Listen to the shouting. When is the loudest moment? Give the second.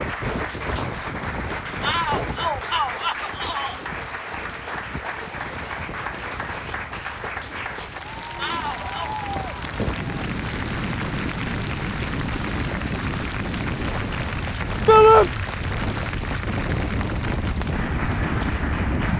15 s.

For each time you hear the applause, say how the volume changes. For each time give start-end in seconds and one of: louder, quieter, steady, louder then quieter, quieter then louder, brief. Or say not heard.
0.0-19.1 steady.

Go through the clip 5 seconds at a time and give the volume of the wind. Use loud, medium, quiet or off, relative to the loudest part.
medium, medium, loud, loud.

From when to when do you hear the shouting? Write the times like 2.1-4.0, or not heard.
1.8-3.8, 8.3-9.1, 14.8-15.3.